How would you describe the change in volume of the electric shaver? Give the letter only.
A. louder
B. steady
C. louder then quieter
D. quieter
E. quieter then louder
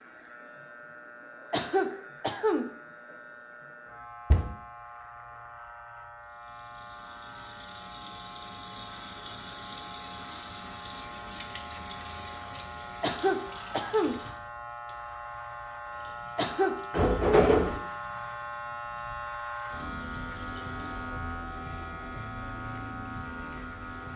A.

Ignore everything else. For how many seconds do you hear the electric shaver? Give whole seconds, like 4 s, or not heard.
24 s.